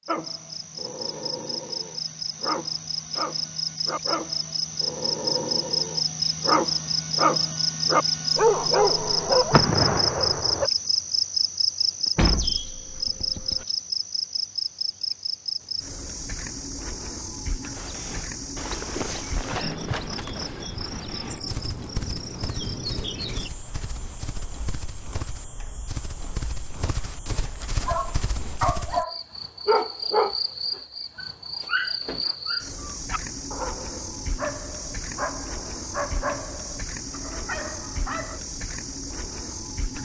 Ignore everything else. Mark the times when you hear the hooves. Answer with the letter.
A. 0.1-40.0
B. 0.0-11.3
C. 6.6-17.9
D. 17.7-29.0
D.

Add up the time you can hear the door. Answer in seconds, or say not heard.
2 s.